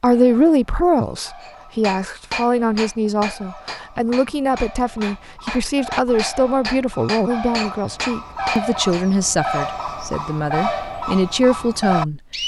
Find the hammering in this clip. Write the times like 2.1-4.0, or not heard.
1.4-9.1.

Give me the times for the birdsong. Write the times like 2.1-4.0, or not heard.
0.0-12.4.